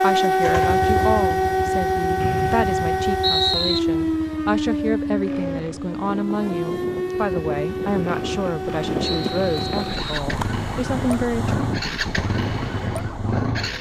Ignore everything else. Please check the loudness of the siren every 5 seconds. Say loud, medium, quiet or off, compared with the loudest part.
loud, medium, quiet.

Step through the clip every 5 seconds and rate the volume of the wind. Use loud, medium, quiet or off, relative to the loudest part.
off, loud, loud.